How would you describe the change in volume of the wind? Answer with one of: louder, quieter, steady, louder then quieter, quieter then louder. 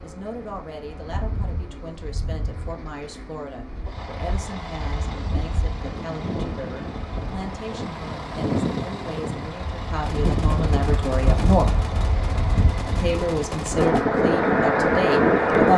louder.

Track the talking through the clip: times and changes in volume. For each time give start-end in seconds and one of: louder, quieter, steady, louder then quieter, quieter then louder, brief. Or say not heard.
0.0-11.8 louder
13.0-15.7 brief.